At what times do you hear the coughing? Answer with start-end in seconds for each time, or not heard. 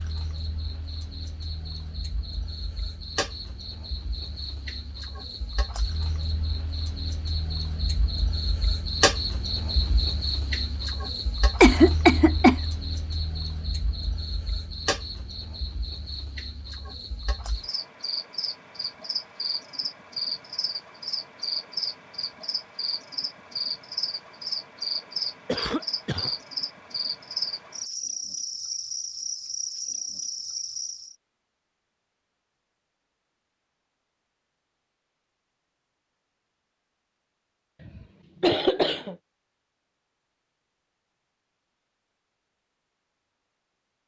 11.6-12.6, 25.4-26.3, 37.8-39.1.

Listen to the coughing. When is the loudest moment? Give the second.
12 s.